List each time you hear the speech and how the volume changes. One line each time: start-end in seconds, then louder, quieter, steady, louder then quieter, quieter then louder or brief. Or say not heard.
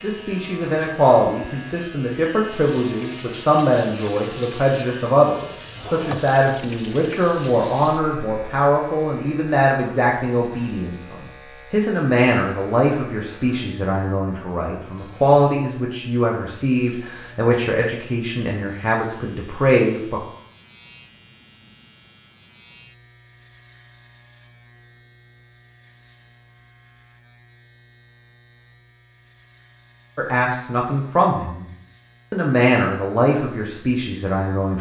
0.0-20.2 steady
30.1-31.6 brief
32.3-34.7 brief.